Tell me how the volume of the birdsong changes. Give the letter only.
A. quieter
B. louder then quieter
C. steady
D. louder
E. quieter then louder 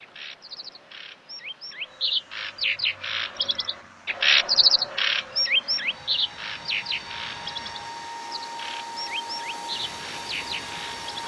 B.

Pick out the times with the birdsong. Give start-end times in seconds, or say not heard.
0.0-11.2.